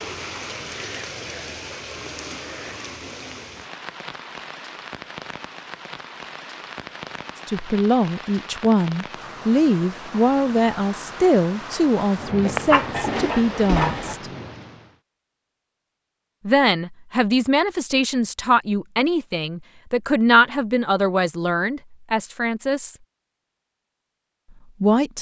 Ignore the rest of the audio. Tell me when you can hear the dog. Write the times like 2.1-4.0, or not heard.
12.4-14.2.